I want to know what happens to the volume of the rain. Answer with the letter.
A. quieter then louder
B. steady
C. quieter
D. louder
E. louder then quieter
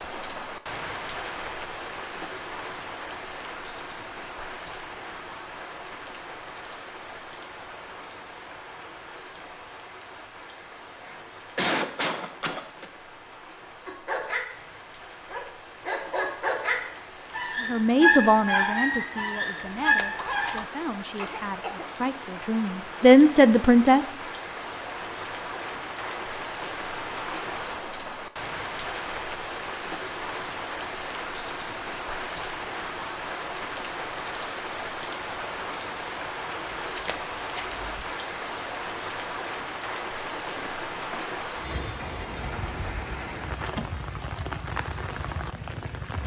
A.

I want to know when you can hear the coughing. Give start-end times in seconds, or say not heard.
11.0-12.8, 20.1-21.9, 40.2-41.4.